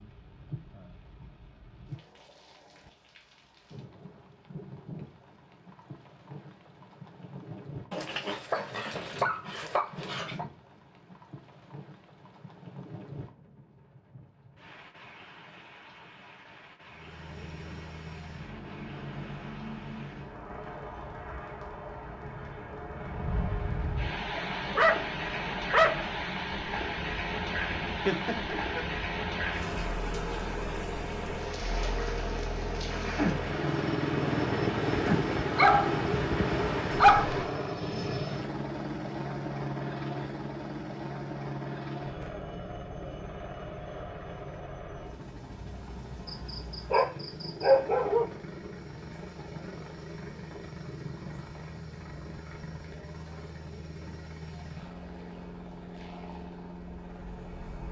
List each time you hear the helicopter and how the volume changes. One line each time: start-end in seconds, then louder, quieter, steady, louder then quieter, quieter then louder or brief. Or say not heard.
16.9-57.8 louder then quieter.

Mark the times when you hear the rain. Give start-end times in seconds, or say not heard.
0.0-37.5.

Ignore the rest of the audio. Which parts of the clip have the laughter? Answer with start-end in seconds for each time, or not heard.
28.1-28.8.